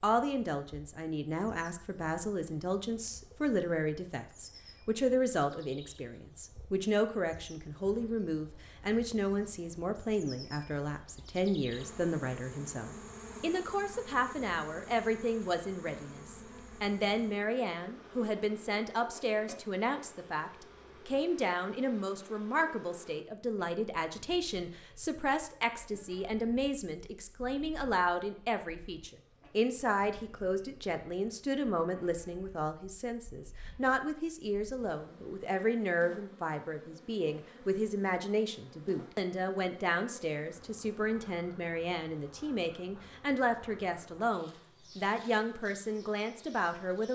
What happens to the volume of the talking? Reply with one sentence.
The loudness of the talking stays about the same.